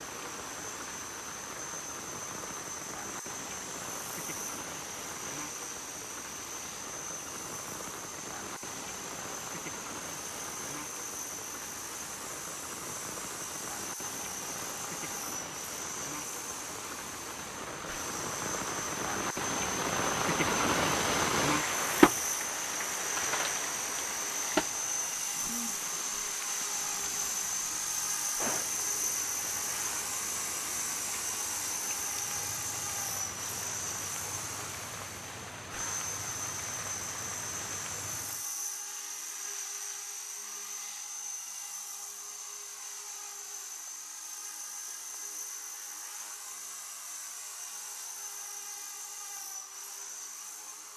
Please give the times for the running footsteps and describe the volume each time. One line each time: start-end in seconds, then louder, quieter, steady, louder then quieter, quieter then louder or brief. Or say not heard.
not heard.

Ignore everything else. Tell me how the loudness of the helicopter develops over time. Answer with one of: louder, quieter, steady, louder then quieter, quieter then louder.
louder then quieter.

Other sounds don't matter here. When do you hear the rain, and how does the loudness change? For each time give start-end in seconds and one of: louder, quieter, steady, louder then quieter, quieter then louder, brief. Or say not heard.
0.0-38.5 louder then quieter.